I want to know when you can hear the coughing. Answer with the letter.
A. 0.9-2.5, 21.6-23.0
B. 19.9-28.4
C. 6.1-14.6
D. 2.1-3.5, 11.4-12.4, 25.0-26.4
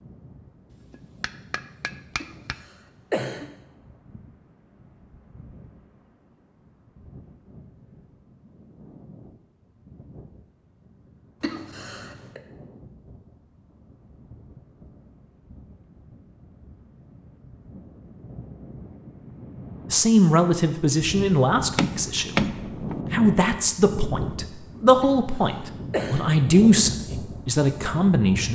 D.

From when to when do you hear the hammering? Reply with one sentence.
The hammering can be heard from 0.9 to 2.5 s and from 21.6 to 23.0 s.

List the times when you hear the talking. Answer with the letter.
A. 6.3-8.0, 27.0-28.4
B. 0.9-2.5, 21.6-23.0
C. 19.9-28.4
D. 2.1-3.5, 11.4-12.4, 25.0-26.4
C.